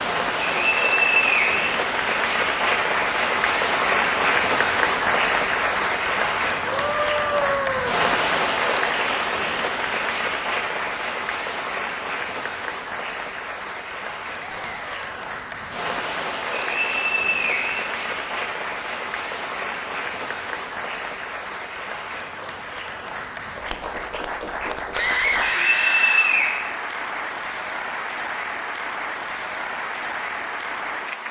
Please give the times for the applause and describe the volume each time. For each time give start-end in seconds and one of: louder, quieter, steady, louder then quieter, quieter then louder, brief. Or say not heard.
0.0-31.2 quieter.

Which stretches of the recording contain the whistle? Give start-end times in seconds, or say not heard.
0.5-2.4, 16.6-17.9, 25.4-26.6.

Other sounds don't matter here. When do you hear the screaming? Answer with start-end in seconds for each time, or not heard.
6.7-8.0, 14.3-15.2, 24.9-26.4.